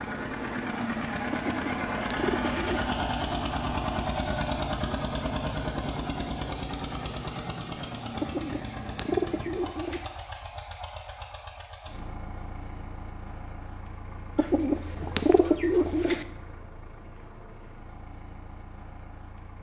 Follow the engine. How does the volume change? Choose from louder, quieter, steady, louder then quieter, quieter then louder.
quieter.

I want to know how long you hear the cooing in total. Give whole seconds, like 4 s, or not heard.
5 s.